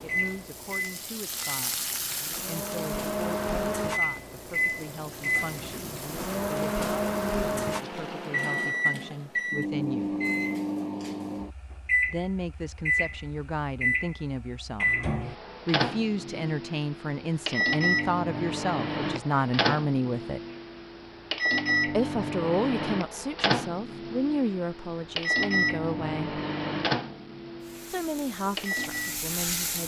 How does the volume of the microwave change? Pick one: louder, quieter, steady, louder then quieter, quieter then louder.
steady.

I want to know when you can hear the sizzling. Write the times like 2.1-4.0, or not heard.
0.0-8.2, 27.6-29.8.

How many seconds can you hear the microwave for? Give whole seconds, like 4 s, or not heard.
30 s.